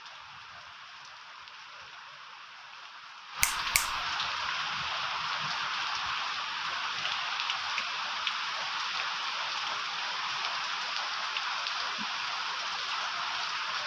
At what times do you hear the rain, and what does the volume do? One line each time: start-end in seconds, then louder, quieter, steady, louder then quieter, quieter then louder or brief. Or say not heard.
0.0-13.8 louder.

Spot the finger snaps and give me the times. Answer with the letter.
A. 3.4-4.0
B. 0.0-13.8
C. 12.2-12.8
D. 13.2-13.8
A.